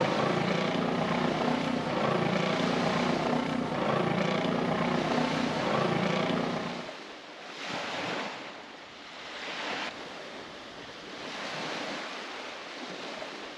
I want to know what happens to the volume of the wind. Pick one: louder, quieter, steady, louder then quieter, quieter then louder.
steady.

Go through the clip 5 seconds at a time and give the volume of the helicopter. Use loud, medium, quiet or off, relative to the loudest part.
loud, loud, off.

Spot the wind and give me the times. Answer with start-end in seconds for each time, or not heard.
0.0-13.5.